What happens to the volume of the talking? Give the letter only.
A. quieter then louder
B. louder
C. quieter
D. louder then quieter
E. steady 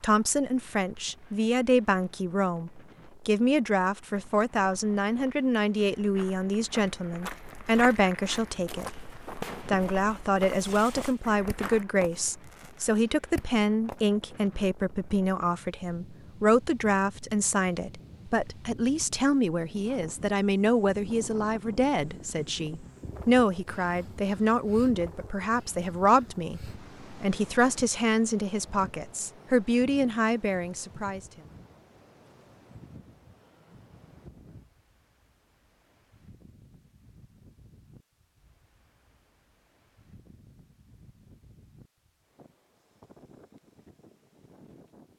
E.